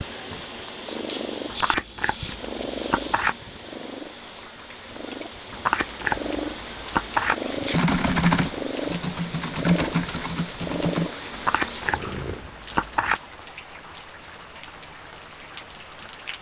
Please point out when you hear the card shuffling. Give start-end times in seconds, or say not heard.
1.5-3.4, 5.5-7.3, 11.3-13.2.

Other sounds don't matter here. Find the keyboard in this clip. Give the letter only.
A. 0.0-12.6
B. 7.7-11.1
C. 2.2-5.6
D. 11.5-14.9
B.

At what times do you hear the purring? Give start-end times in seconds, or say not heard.
0.0-12.6.